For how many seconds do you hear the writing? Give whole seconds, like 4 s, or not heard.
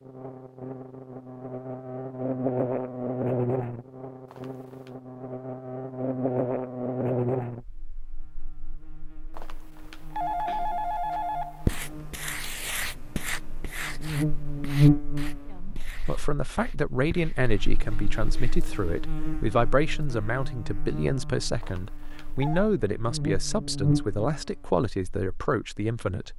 7 s.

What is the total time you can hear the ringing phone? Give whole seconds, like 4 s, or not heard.
4 s.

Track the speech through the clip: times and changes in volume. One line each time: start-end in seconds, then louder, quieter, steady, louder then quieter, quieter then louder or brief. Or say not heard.
15.5-26.3 steady.